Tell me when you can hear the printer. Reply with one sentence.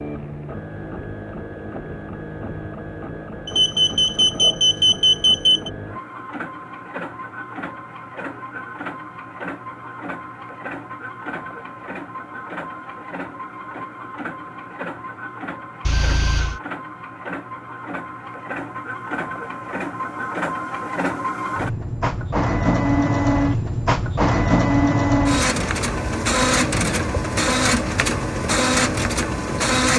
The printer can be heard from 0.0 to 29.9 s.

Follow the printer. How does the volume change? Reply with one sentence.
The volume of the printer goes up.